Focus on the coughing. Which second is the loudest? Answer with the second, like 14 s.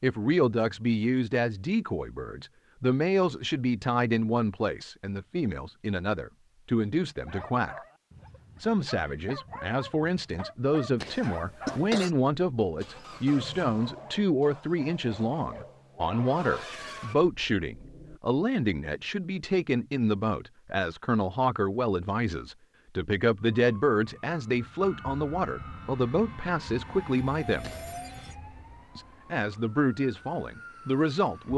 12 s.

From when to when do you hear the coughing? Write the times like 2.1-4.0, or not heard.
11.0-12.1, 27.6-28.1.